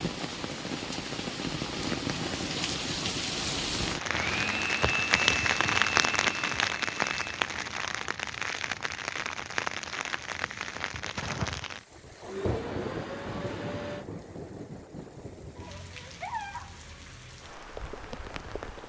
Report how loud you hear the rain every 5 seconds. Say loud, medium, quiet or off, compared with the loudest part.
loud, loud, medium, quiet.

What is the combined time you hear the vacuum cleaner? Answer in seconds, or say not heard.
5 s.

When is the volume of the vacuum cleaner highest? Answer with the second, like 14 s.
5 s.